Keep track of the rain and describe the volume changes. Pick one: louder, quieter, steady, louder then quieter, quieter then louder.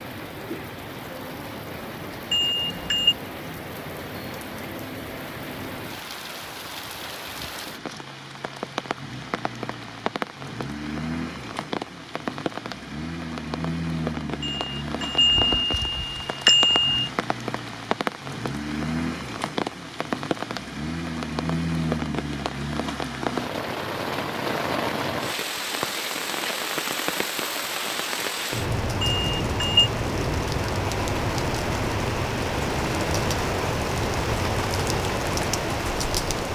louder.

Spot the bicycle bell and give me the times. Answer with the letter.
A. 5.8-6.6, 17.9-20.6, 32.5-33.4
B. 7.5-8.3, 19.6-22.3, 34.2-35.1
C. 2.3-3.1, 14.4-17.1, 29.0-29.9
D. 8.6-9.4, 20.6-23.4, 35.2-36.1
C.